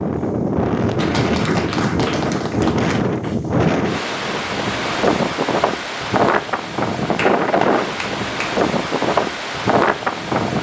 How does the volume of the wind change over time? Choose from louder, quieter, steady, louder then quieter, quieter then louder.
steady.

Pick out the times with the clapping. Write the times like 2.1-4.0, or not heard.
0.9-3.0, 7.2-8.6.